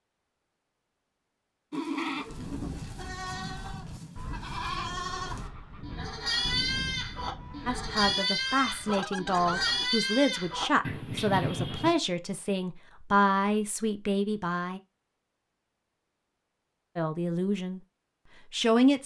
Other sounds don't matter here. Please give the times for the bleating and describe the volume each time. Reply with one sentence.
You can hear the bleating from 1.7 to 11.9 s, getting louder.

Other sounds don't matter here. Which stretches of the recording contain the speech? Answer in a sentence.
You can hear the speech from 7.7 to 14.8 s, from 16.9 to 17.8 s and from 18.5 to 19.0 s.